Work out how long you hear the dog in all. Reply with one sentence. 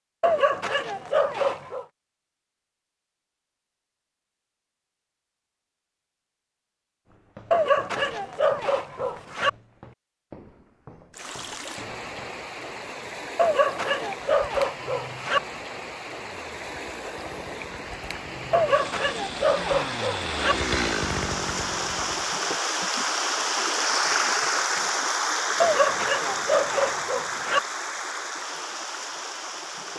You can hear the dog for 10 seconds altogether.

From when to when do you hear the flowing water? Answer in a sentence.
The flowing water can be heard from 11.1 to 29.9 s.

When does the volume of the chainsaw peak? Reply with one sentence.
The loudest moment of the chainsaw is at 21 seconds.